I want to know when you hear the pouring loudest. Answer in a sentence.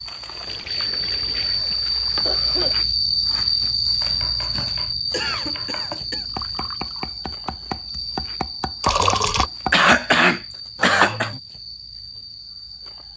The loudest moment of the pouring is at 9 seconds.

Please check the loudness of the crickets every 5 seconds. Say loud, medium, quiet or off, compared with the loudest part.
loud, medium, quiet.